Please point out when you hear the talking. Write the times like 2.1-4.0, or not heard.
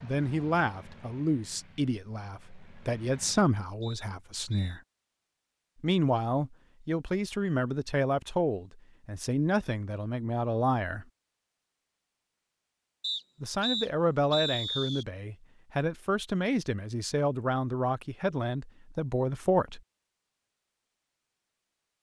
0.0-4.8, 5.8-11.1, 13.4-19.8.